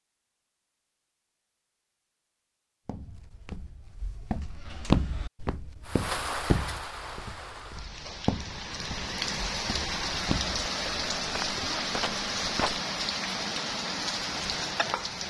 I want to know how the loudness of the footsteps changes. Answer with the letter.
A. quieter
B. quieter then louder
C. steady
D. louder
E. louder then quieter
A.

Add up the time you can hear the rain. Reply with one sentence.
The rain can be heard for 9 seconds in total.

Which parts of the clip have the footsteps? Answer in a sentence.
You can hear the footsteps from 2.9 to 12.8 s.